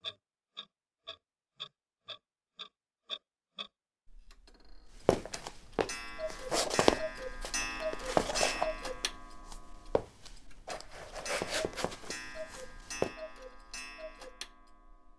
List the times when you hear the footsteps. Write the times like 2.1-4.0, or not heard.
5.0-13.1.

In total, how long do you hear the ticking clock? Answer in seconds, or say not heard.
15 s.